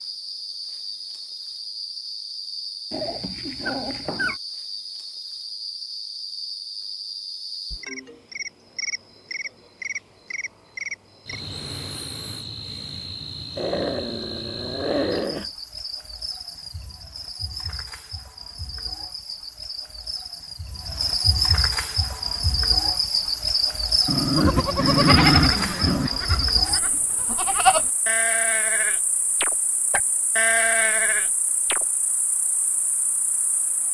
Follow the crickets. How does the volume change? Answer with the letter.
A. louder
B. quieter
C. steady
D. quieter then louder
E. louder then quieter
E.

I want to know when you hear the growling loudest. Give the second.
25 s.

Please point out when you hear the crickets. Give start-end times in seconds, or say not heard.
0.0-33.8.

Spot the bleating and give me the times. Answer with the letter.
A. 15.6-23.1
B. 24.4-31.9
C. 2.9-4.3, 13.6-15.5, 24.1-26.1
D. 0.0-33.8
B.